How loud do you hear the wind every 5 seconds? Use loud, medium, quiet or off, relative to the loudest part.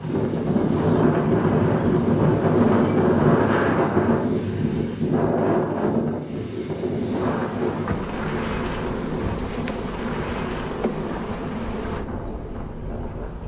loud, medium, quiet.